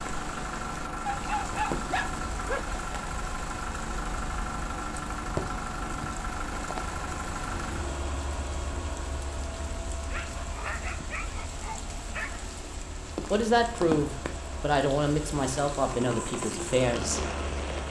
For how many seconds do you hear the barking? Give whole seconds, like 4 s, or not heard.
4 s.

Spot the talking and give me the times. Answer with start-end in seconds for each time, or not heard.
13.3-17.2.